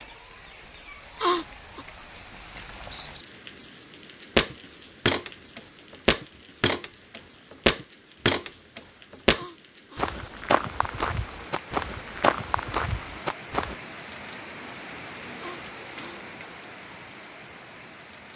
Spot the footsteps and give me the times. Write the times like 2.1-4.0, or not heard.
4.3-13.8.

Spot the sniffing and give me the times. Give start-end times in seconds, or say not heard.
1.2-1.9, 9.3-10.2, 15.3-16.2.